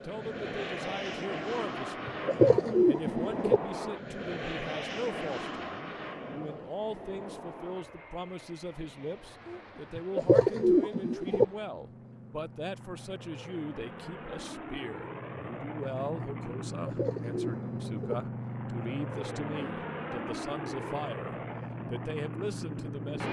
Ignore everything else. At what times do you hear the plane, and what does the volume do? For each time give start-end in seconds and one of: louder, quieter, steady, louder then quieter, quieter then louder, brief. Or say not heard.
0.0-23.2 quieter then louder.